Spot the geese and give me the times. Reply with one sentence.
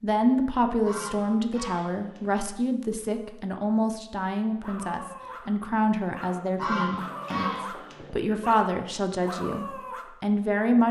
You can hear the geese from 0.8 to 2.5 s and from 6.5 to 8.2 s.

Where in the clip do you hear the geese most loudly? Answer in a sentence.
The volume of the geese peaks at 7 seconds.